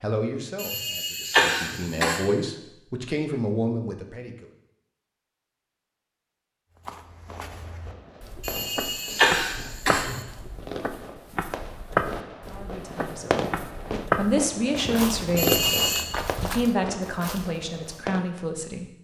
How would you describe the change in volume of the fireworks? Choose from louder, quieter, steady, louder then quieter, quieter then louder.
louder then quieter.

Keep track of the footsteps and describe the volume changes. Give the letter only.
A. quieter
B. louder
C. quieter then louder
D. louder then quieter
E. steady
D.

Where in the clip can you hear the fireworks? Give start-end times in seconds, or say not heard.
7.2-18.2.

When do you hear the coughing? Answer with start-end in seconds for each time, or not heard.
0.6-2.2, 8.4-10.2, 15.3-16.1.